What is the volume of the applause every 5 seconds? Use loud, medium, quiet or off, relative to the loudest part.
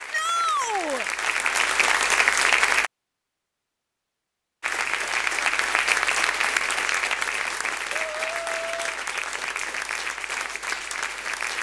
loud, loud, medium.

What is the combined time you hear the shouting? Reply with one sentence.
You can hear the shouting for 2 seconds altogether.